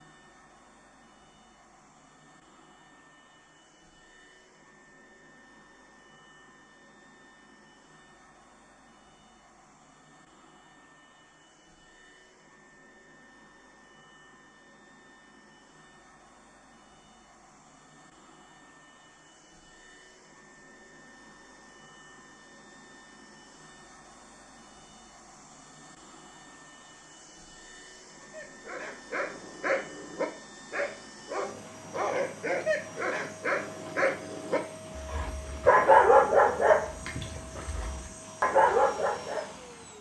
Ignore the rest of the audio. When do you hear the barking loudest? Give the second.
36 s.